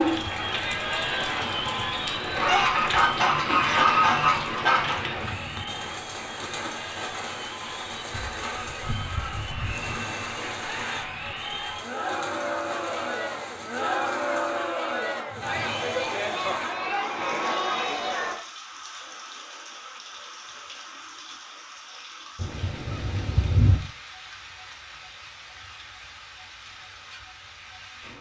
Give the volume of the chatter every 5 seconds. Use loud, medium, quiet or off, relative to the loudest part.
loud, medium, loud, loud, off, off.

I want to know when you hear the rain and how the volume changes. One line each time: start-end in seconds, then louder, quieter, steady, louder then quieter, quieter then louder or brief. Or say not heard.
0.0-28.1 quieter.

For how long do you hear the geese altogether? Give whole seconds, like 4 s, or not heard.
8 s.